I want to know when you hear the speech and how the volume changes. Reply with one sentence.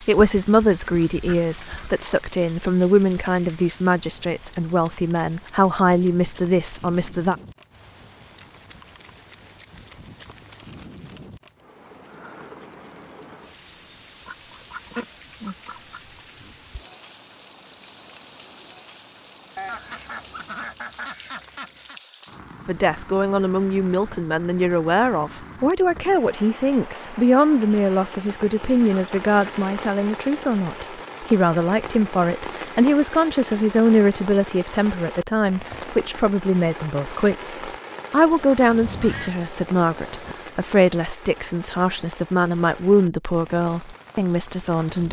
You can hear the speech from 0.1 to 7.3 s, at a steady volume; and from 22.6 to 45.0 s, at a steady volume.